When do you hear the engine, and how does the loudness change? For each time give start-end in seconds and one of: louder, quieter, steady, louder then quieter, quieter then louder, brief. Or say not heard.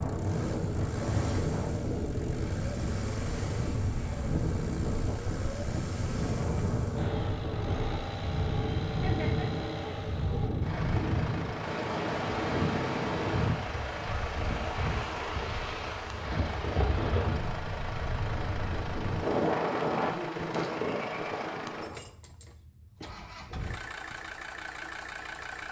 0.0-25.6 steady.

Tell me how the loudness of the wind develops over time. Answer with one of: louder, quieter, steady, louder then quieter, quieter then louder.
steady.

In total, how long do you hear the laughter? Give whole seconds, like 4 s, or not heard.
3 s.